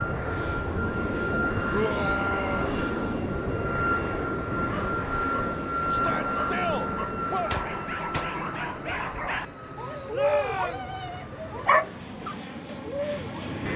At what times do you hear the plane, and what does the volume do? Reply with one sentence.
The plane can be heard from 0.0 to 13.7 s, getting quieter.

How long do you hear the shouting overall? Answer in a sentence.
You can hear the shouting for 4 seconds altogether.